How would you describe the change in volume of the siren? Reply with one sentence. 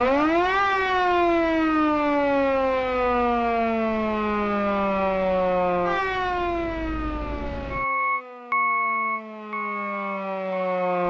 The volume of the siren goes down.